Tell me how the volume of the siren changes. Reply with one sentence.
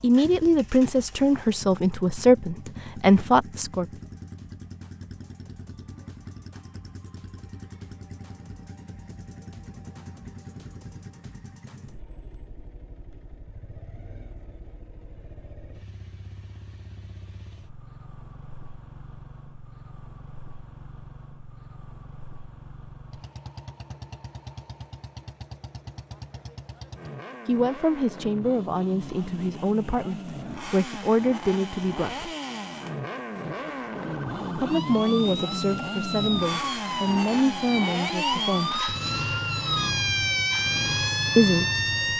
The volume of the siren goes up.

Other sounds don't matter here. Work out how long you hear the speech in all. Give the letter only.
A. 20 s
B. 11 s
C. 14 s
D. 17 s
C.